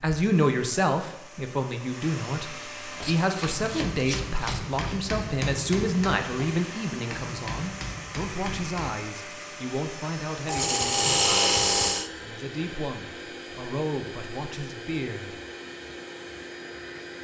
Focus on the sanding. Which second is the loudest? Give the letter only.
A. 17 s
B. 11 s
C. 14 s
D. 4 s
B.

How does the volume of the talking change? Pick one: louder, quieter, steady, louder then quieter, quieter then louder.
quieter.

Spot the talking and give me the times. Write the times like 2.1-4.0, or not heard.
0.0-15.3.